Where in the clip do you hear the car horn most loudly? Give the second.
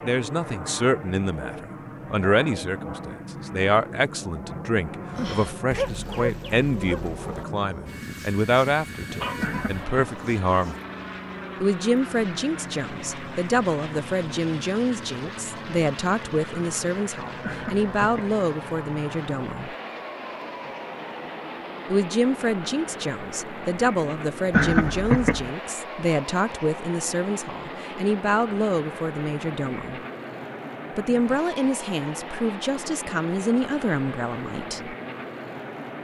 25 s.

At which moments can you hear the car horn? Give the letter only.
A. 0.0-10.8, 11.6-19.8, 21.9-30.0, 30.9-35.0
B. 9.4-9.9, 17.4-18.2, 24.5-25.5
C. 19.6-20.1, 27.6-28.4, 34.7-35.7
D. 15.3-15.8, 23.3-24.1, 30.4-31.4
B.